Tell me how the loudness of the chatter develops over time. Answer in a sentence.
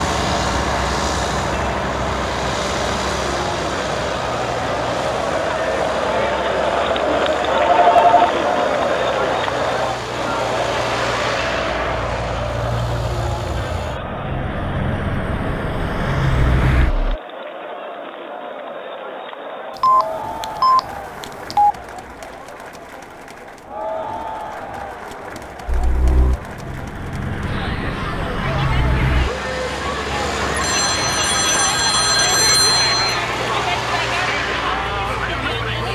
The loudness of the chatter goes down, then up.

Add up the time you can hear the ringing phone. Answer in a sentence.
The ringing phone can be heard for 5 seconds in total.